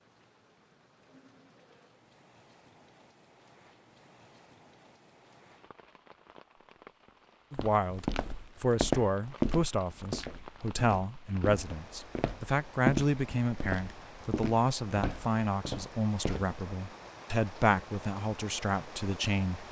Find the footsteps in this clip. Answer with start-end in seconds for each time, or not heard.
7.5-16.5.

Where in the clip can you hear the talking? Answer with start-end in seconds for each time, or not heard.
7.5-19.6.